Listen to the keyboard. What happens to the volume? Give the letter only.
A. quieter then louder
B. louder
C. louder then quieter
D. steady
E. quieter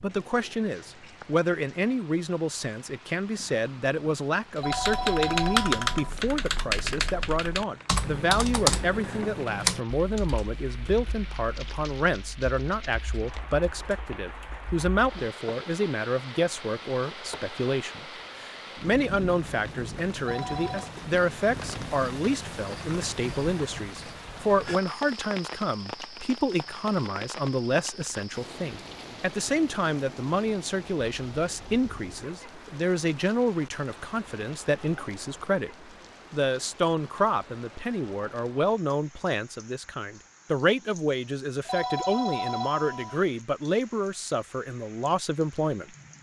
E.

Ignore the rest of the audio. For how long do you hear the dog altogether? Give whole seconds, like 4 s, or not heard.
not heard.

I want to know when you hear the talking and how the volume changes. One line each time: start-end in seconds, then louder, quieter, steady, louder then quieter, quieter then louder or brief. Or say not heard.
0.0-35.7 steady
36.3-45.9 steady.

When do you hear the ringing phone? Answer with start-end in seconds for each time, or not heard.
4.5-6.1, 20.2-20.9, 41.6-43.2.